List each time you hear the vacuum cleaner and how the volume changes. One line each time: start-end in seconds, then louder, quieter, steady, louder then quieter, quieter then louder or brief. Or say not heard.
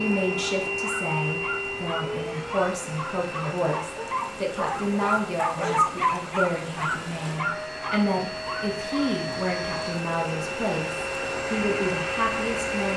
0.0-12.9 quieter then louder.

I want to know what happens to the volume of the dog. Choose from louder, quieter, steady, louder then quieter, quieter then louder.
louder then quieter.